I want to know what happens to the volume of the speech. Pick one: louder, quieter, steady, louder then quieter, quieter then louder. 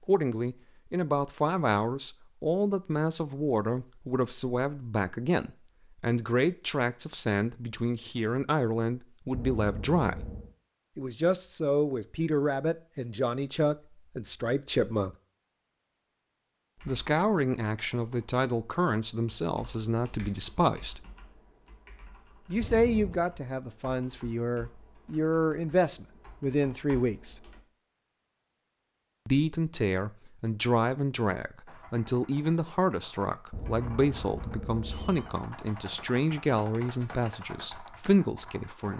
steady.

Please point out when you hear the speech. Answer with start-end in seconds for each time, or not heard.
0.0-10.3, 10.9-15.2, 16.9-21.1, 22.5-27.4, 29.2-38.9.